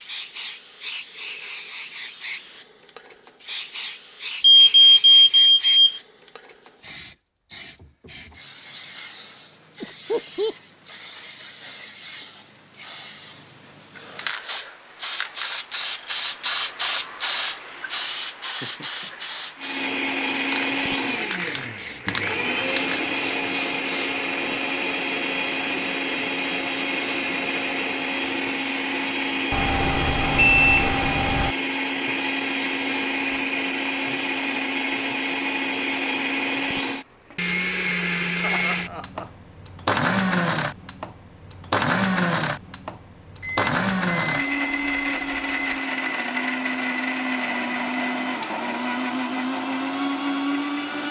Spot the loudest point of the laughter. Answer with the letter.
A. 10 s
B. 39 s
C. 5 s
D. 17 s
A.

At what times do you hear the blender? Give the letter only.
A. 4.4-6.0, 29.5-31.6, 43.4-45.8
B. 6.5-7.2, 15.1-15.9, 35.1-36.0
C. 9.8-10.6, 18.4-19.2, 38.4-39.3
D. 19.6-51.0
D.